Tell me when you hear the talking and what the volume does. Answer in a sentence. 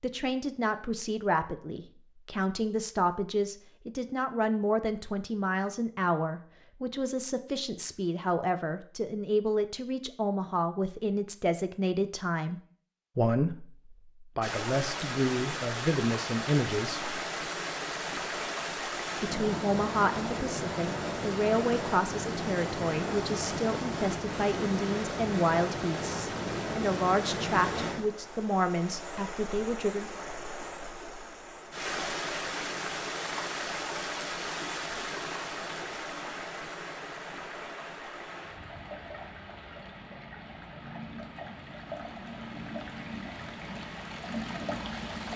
The talking can be heard from 0.0 to 17.1 s, at a steady volume; and from 19.2 to 30.1 s, at a steady volume.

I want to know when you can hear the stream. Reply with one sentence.
The stream can be heard from 14.4 to 45.3 s.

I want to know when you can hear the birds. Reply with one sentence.
You can't hear the birds here.